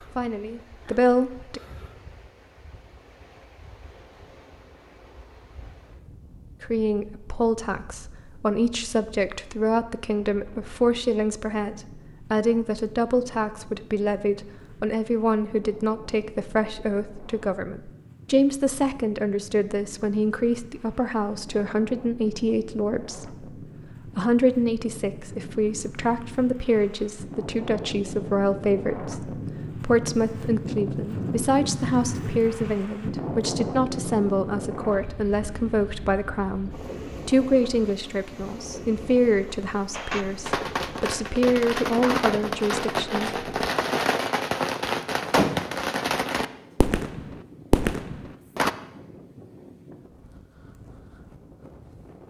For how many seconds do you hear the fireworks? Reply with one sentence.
The fireworks can be heard for 9 seconds in total.